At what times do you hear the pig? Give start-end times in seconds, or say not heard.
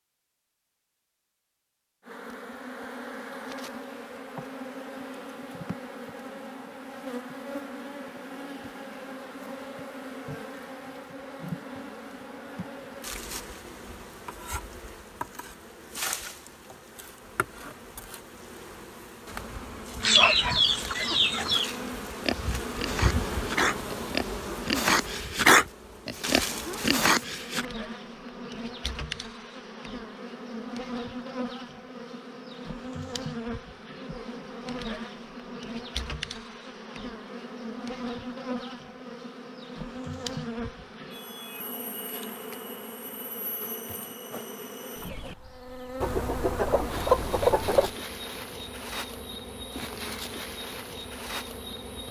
22.2-27.6.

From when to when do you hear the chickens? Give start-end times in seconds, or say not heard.
20.0-21.7, 46.0-48.0.